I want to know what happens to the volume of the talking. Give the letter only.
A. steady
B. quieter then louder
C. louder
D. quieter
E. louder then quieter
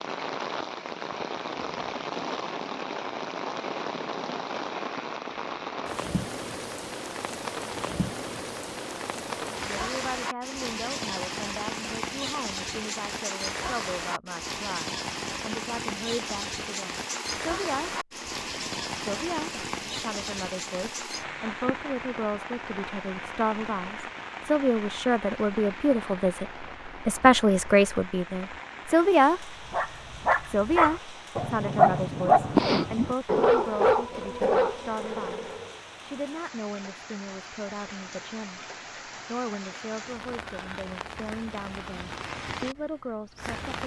E.